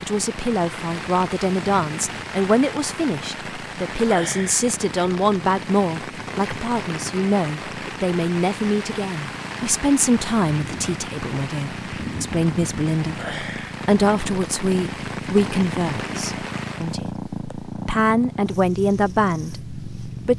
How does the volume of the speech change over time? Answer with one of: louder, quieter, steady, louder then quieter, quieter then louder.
steady.